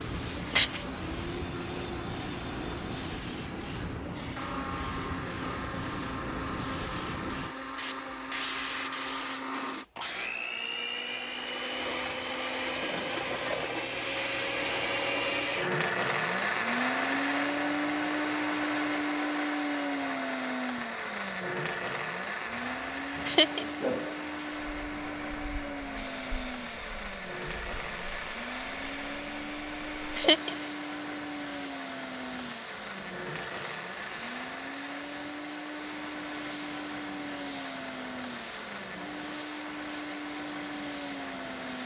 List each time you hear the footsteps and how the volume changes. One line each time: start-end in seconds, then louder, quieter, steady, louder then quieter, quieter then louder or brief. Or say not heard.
not heard.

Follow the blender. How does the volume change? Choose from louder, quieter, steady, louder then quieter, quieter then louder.
louder then quieter.